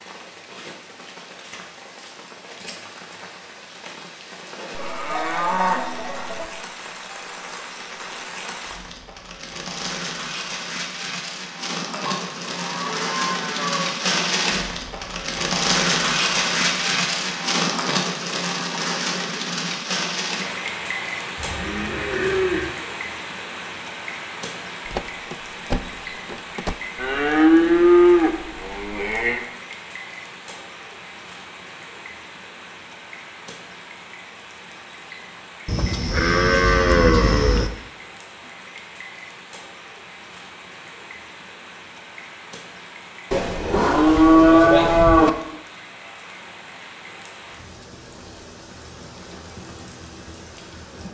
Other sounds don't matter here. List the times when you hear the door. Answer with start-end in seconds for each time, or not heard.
24.9-26.8.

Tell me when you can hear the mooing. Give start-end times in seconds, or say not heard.
4.8-6.5, 11.9-13.9, 21.4-22.7, 26.9-29.4, 35.6-37.7, 43.3-45.3.